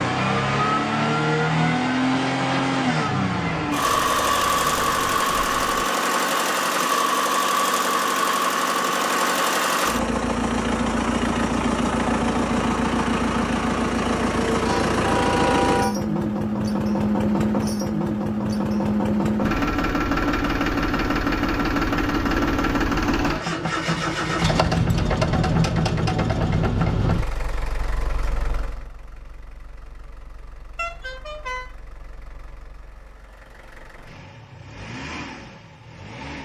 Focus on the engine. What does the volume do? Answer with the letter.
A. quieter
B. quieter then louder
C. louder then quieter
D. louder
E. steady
A.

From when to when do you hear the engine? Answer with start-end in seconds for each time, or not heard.
0.0-36.4.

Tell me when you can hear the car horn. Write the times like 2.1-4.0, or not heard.
3.8-5.7, 14.6-15.9, 30.8-31.6.